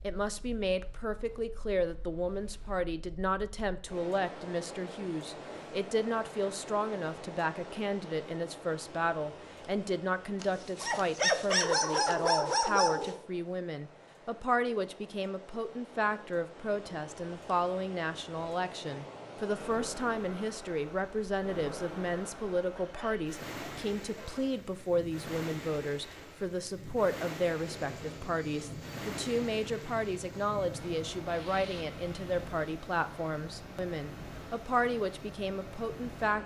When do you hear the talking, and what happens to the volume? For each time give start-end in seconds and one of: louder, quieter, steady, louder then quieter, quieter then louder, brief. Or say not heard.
0.0-36.4 steady.